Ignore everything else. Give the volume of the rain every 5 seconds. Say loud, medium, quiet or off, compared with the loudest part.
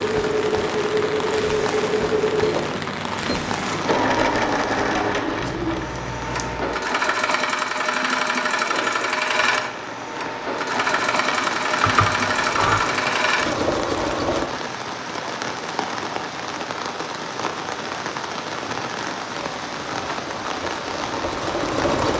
loud, medium, loud, loud, loud.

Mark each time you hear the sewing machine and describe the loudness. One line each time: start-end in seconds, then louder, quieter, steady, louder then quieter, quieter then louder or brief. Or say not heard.
0.0-14.5 steady
19.2-22.1 brief.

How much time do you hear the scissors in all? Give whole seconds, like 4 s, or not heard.
2 s.